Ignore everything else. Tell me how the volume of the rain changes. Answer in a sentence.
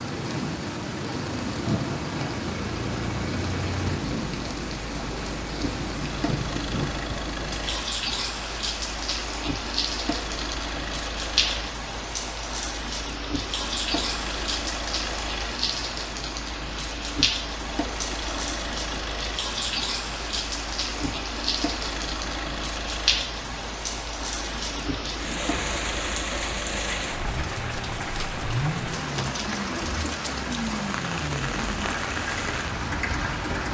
The loudness of the rain stays about the same.